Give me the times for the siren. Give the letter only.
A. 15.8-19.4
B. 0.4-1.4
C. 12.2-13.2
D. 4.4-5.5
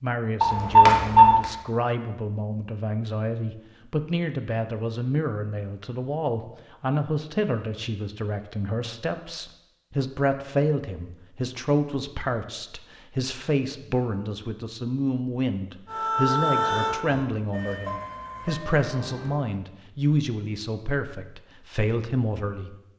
A.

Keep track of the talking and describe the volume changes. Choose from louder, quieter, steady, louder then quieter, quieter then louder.
steady.